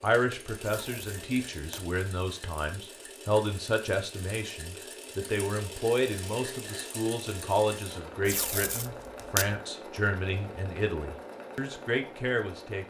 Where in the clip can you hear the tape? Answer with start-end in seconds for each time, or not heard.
0.6-1.9, 8.2-9.6.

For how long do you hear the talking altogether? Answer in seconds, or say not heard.
13 s.